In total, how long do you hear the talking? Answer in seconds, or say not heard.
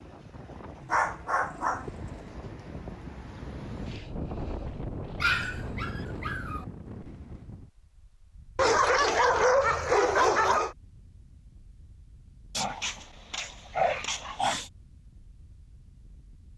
not heard.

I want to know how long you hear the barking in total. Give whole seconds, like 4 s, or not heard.
7 s.